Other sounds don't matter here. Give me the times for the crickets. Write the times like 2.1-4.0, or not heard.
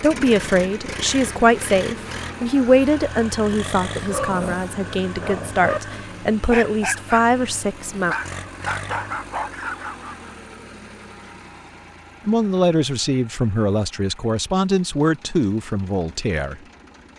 not heard.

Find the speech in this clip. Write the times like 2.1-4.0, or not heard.
0.0-8.2, 12.2-16.6.